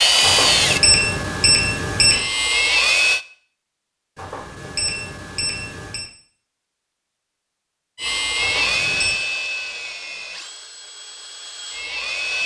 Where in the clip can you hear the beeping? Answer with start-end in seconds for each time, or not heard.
0.2-2.2, 4.2-6.1, 8.4-9.2.